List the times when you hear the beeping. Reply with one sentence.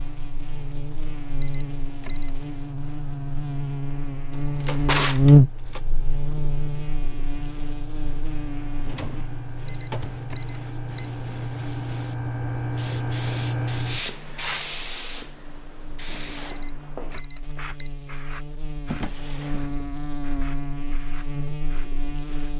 The beeping can be heard from 1.4 to 2.3 s, from 9.7 to 11.1 s and from 16.5 to 17.9 s.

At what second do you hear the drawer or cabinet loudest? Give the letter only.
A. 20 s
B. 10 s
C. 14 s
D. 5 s
D.